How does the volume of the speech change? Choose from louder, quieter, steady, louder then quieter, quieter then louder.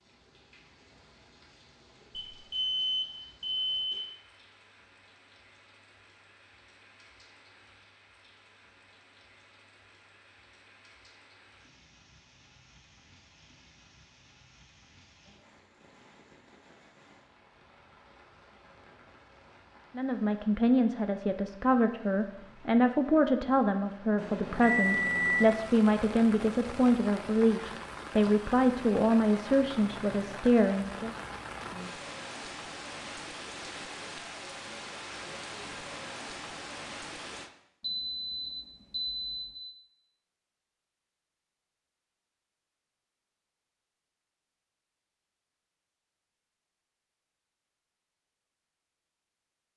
steady.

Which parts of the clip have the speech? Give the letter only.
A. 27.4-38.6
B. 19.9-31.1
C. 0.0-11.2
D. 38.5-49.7
B.